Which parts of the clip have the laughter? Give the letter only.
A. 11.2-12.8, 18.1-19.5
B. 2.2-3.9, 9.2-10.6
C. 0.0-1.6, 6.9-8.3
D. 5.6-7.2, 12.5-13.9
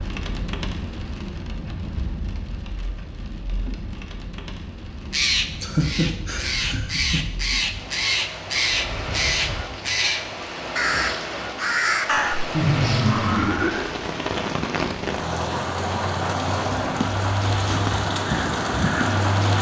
D.